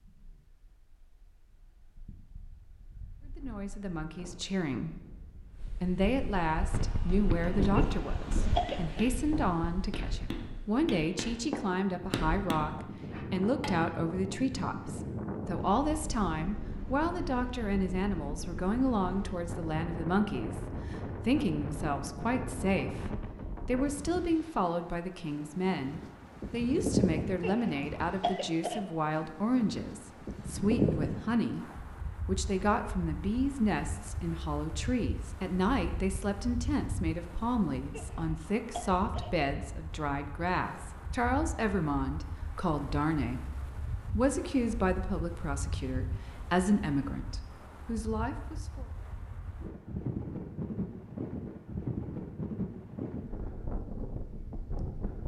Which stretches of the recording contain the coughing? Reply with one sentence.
The coughing can be heard from 7.8 to 9.0 s, from 27.4 to 28.8 s and from 37.9 to 39.4 s.